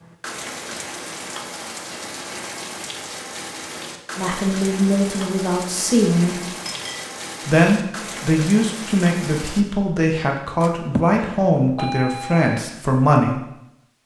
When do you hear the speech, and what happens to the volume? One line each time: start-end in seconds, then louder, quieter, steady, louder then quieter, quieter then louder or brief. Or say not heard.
4.2-6.4 brief
7.5-13.4 steady.